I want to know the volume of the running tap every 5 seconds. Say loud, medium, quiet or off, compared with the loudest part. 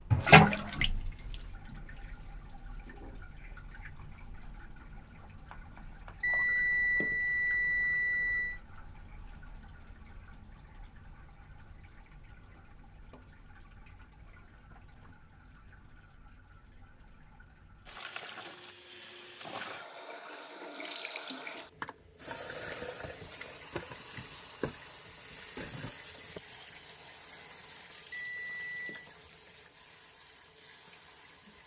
loud, quiet, quiet, quiet, quiet, quiet, quiet.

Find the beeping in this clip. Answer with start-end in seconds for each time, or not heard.
6.2-8.6, 28.1-29.1.